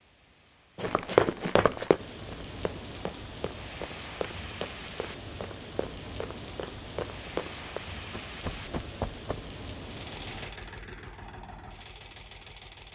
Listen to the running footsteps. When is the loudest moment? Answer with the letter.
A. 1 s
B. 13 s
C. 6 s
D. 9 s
A.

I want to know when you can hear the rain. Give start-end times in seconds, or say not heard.
0.0-10.6.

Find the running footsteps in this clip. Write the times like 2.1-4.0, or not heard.
0.8-9.4.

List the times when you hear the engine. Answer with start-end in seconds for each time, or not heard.
9.8-12.9.